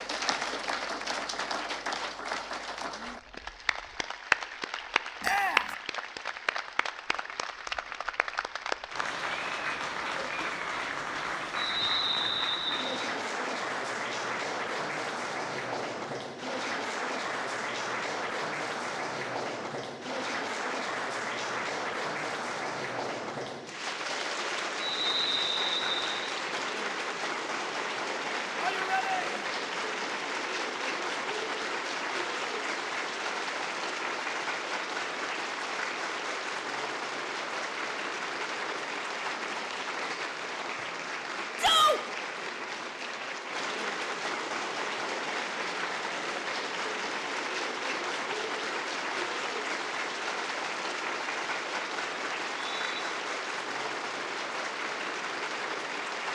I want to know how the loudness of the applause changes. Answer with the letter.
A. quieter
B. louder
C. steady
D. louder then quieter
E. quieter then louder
C.